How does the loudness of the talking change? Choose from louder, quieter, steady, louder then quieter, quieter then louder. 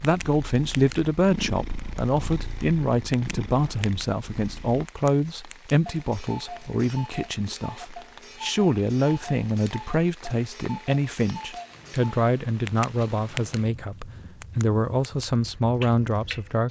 steady.